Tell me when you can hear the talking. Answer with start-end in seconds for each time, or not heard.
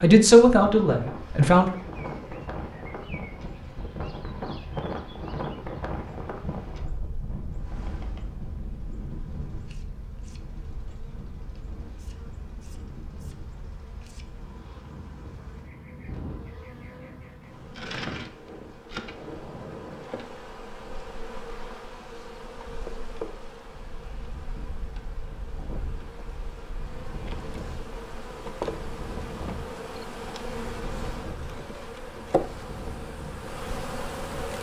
0.0-1.8.